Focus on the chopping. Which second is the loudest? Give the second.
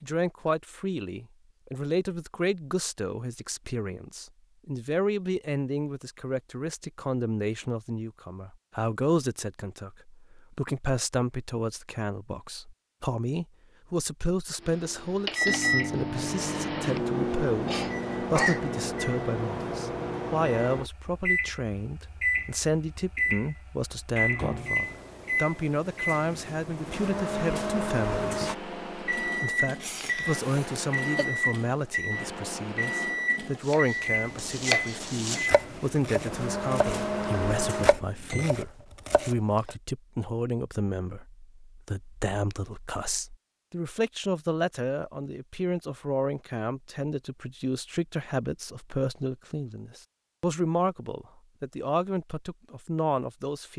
35 s.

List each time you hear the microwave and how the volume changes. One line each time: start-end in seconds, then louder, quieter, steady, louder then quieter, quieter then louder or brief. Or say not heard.
14.6-38.5 steady.